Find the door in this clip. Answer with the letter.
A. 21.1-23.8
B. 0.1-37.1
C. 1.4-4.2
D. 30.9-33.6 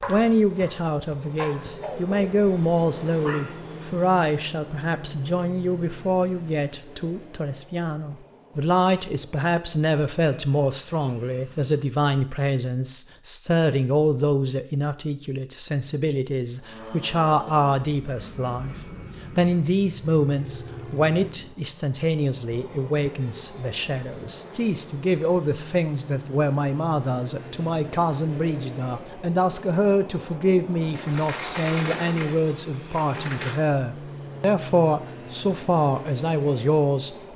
D.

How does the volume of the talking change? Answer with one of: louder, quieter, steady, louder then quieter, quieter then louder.
steady.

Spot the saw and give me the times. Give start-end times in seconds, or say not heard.
not heard.